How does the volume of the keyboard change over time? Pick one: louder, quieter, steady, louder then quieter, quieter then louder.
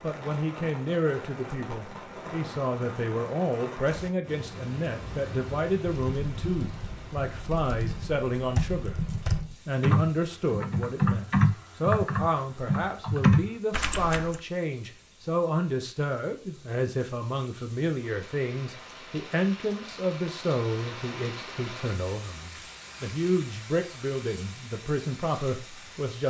louder.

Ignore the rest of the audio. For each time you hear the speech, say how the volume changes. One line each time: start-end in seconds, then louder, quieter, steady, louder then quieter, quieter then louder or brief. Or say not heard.
0.0-26.2 steady.